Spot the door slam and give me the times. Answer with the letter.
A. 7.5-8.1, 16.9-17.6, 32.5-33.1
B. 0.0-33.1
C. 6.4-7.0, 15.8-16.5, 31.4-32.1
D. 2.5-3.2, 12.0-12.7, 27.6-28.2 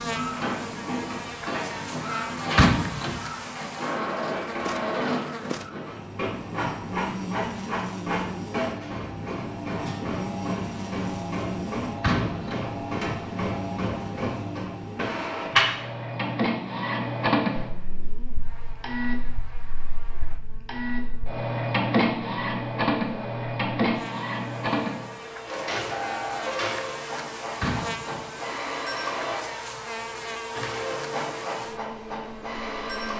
D.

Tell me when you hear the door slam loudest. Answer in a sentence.
The volume of the door slam peaks at 3 seconds.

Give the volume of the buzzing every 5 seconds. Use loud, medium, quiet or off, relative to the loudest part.
loud, loud, loud, medium, medium, loud, loud.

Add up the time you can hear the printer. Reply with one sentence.
You can hear the printer for 33 seconds altogether.